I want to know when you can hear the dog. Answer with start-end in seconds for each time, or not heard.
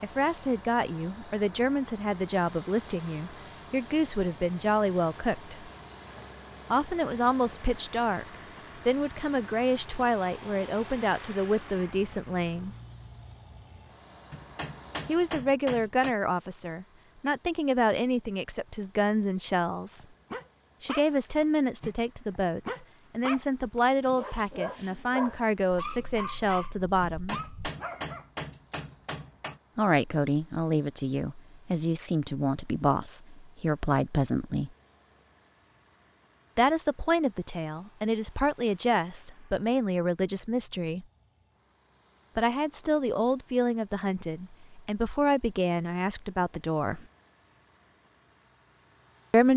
19.9-28.2.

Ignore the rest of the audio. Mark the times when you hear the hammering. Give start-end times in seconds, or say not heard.
14.3-16.1, 27.0-29.6.